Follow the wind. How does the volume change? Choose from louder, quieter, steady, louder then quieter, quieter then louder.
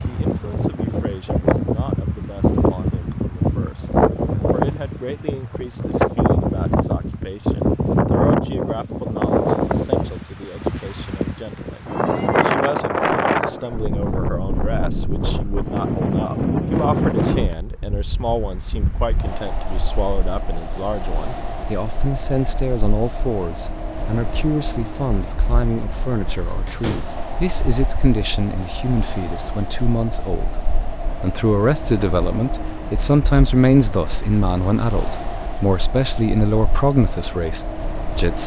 quieter.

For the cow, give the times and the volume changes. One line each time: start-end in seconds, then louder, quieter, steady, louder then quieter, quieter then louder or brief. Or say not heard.
not heard.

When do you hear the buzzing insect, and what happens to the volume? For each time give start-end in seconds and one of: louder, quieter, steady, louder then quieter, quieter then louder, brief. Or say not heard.
not heard.